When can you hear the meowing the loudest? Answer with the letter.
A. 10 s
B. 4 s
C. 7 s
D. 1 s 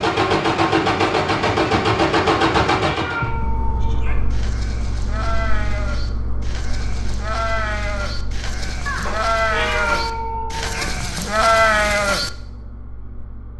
A.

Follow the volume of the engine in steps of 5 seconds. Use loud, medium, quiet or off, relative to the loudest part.
loud, quiet, quiet.